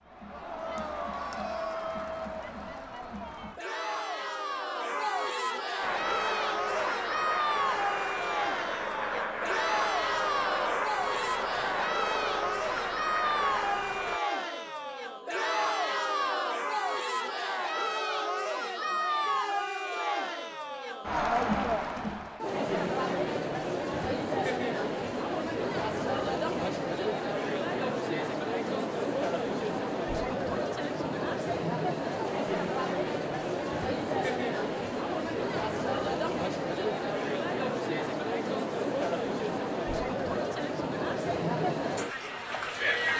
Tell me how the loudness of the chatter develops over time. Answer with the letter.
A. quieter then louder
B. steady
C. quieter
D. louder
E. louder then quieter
B.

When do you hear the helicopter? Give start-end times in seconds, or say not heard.
5.8-14.2.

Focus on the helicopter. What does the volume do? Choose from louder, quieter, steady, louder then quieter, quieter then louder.
steady.